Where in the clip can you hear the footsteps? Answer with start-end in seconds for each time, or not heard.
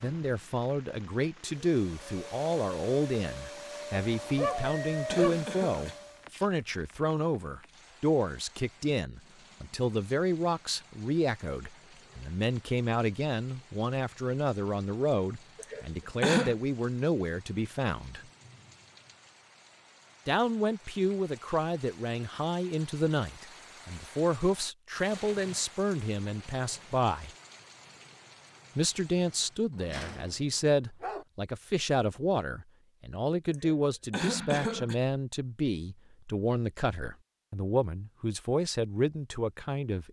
not heard.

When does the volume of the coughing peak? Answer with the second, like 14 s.
16 s.